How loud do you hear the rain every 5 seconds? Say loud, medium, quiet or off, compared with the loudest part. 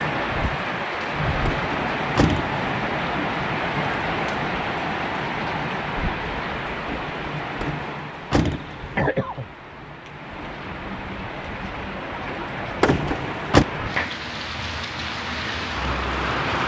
loud, loud, medium, loud.